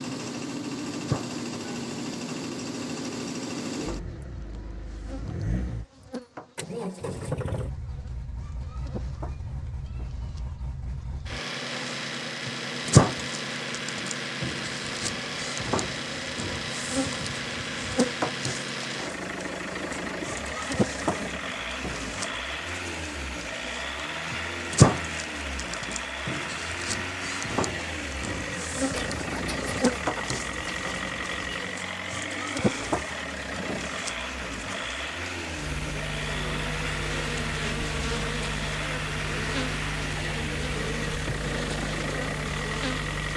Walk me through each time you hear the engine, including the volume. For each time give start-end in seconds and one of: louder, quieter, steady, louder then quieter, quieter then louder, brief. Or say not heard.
0.0-43.3 steady.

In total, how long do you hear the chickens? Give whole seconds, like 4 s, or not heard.
3 s.